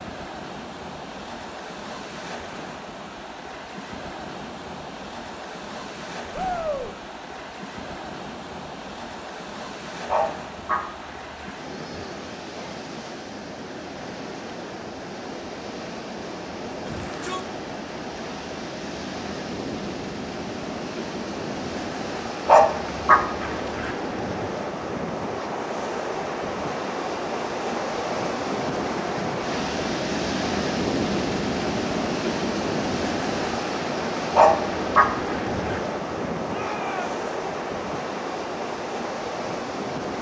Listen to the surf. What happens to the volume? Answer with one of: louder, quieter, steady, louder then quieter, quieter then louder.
louder.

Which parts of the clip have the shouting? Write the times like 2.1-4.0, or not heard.
6.3-6.9, 16.9-17.4, 36.5-37.1.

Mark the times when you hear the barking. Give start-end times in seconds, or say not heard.
10.1-11.5, 22.4-23.9, 34.4-35.8.